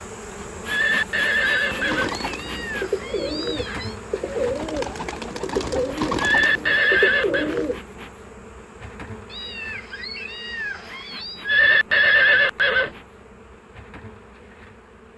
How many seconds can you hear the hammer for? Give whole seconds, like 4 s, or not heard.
not heard.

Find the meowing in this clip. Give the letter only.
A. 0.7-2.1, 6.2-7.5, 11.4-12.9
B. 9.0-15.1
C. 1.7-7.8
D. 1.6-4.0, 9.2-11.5
D.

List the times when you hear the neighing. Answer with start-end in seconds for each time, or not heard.
0.7-2.1, 6.2-7.5, 11.4-12.9.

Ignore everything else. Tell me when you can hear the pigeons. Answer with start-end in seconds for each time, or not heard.
1.7-7.8.